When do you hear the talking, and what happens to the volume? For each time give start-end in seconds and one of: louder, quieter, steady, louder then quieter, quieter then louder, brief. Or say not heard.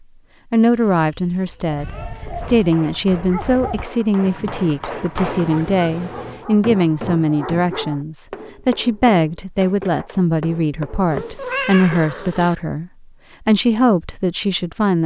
0.5-15.0 steady.